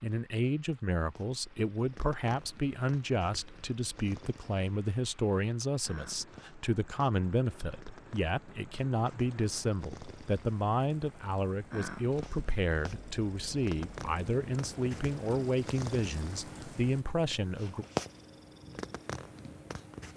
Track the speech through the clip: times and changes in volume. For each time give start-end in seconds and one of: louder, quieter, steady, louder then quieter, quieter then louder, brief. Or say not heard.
0.0-17.9 steady.